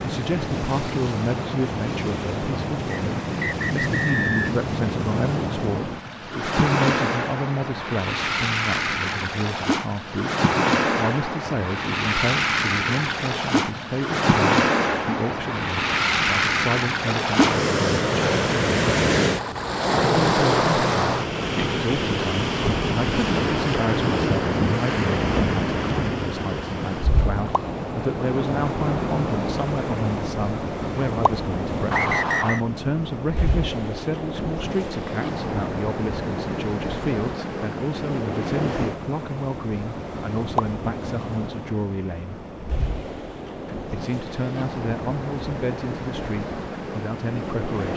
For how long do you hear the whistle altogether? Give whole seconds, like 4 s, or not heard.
2 s.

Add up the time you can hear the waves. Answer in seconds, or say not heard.
48 s.